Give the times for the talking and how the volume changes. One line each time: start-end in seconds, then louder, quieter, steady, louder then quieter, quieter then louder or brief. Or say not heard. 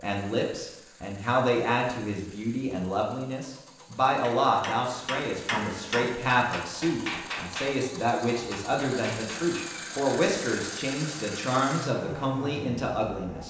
0.0-13.4 steady.